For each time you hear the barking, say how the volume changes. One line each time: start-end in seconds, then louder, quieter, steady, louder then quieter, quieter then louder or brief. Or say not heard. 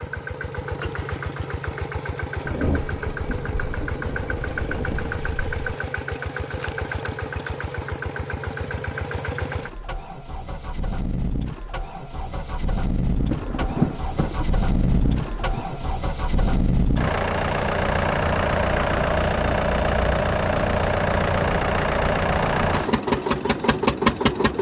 not heard.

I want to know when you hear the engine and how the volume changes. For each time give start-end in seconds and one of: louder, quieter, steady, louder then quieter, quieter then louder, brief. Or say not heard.
0.0-24.5 louder.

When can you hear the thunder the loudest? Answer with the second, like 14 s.
14 s.